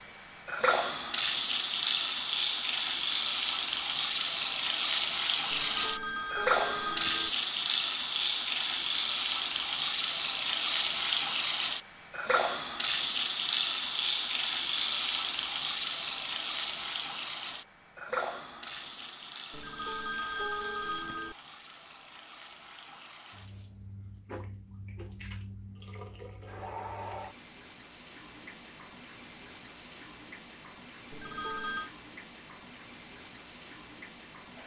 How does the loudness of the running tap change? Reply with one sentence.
The volume of the running tap goes down.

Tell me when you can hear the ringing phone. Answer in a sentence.
The ringing phone can be heard from 5.5 to 7.3 s, from 19.5 to 21.4 s and from 31.1 to 31.9 s.